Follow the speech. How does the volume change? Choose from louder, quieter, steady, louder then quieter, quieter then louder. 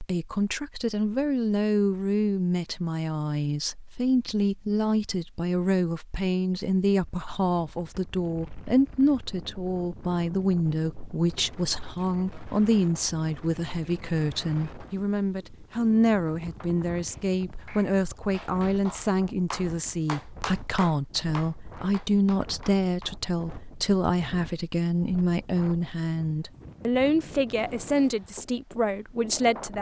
steady.